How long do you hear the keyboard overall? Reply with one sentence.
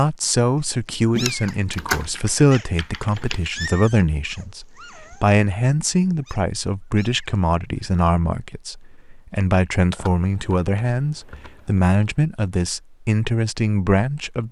You can hear the keyboard for 4 seconds altogether.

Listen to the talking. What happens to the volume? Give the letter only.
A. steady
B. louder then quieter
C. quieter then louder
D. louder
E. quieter
A.